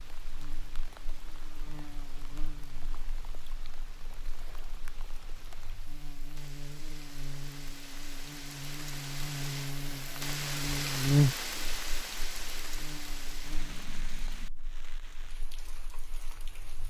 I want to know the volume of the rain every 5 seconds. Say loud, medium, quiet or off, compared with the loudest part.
quiet, medium, loud, quiet.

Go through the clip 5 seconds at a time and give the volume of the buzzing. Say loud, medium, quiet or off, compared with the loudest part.
quiet, medium, loud, quiet.